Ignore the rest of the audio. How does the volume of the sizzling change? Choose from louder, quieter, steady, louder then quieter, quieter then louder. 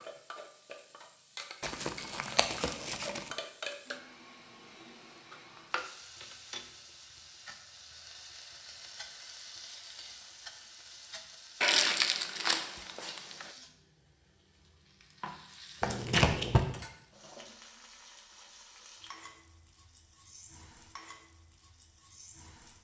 quieter.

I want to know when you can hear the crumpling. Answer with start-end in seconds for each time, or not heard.
1.6-3.2, 11.6-13.4, 15.8-16.6.